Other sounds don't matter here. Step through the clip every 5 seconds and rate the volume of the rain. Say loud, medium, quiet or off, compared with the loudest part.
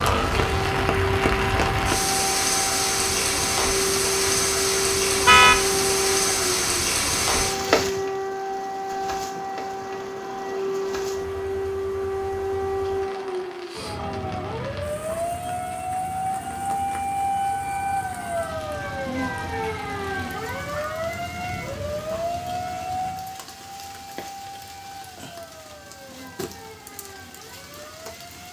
loud, loud, quiet, quiet, quiet, quiet.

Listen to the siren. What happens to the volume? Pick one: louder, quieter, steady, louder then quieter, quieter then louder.
quieter.